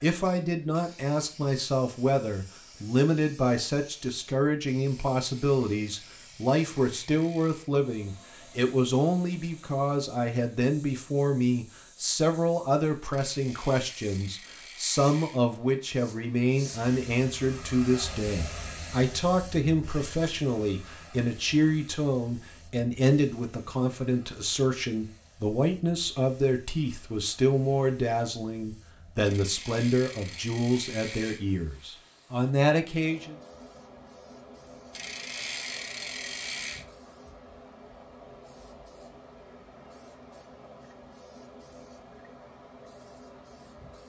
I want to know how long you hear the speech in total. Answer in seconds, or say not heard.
33 s.